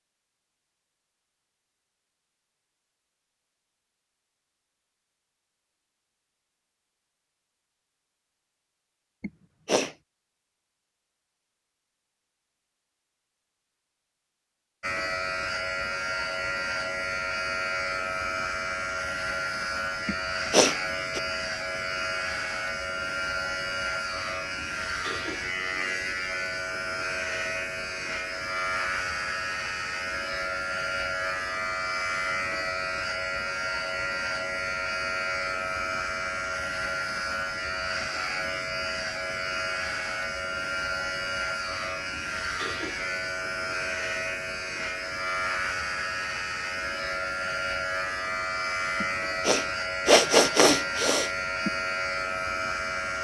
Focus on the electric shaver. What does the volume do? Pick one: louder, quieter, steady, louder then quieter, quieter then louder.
steady.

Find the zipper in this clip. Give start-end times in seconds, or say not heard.
not heard.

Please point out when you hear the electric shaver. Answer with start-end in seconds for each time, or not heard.
14.8-53.2.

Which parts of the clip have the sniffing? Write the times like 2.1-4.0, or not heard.
9.2-9.9, 20.1-21.2, 49.0-51.7.